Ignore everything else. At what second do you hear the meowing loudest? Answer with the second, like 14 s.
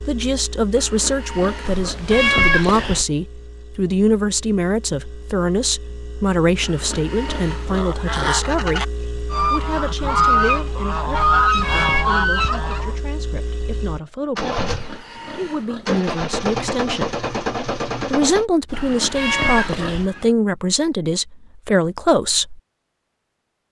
2 s.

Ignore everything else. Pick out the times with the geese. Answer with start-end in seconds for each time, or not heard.
7.7-12.9.